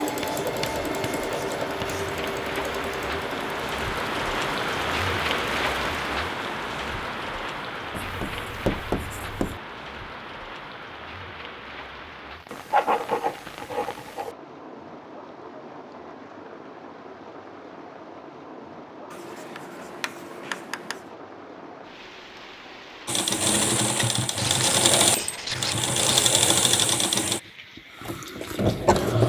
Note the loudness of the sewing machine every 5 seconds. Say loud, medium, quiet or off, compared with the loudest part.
medium, off, off, off, loud, loud.